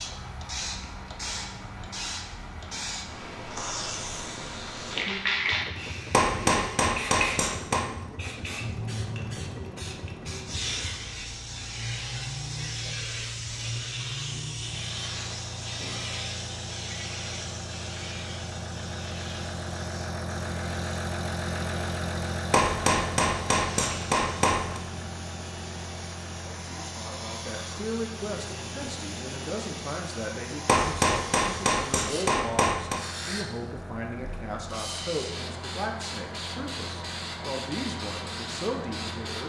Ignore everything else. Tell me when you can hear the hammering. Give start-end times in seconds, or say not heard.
6.1-7.8, 22.5-24.8, 30.6-33.0.